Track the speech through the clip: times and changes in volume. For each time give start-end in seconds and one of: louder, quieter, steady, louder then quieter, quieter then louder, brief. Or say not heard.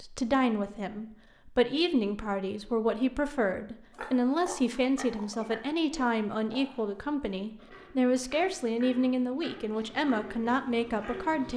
0.0-11.5 steady.